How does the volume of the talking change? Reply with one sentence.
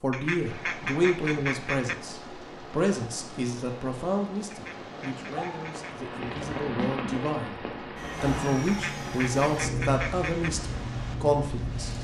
The loudness of the talking goes down, then up.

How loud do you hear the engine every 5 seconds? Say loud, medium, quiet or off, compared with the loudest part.
off, loud, loud.